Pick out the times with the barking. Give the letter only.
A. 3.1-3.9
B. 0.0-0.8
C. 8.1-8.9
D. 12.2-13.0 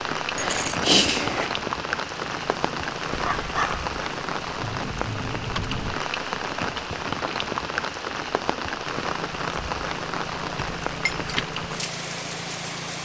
A.